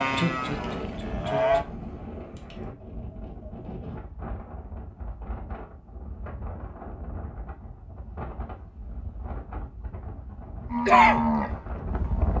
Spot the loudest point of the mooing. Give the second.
11 s.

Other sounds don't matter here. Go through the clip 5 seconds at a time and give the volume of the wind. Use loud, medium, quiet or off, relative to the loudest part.
loud, medium, loud.